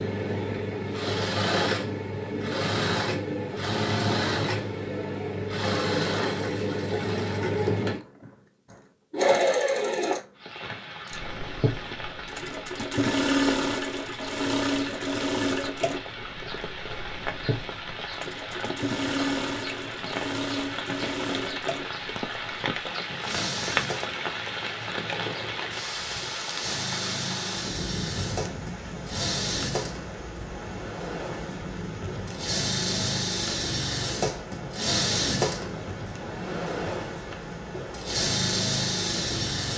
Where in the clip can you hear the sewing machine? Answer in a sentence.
The sewing machine can be heard from 0.0 to 39.7 s.